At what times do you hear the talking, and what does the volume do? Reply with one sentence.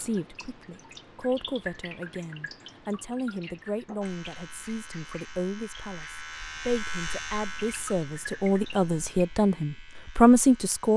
You can hear the talking from 0.0 to 10.9 s, getting louder.